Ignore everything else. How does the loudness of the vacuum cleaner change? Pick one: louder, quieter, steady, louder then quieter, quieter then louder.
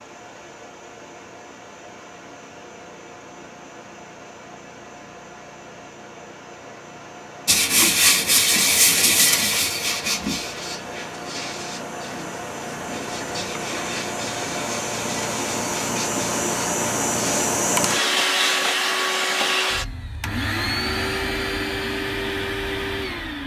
louder.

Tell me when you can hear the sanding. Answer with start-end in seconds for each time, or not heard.
7.5-17.5.